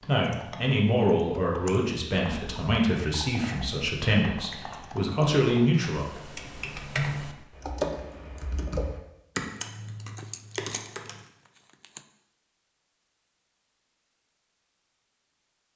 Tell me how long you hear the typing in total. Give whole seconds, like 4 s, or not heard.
11 s.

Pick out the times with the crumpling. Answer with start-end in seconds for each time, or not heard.
10.1-12.1.